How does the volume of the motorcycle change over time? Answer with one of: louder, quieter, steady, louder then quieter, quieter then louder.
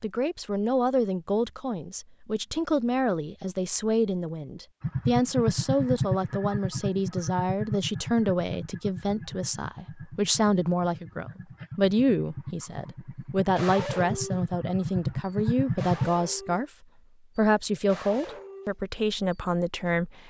quieter then louder.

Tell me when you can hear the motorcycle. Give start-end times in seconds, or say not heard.
4.8-16.1.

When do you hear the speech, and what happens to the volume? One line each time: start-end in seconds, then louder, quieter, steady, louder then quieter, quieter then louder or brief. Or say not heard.
0.0-16.7 steady
17.4-20.2 brief.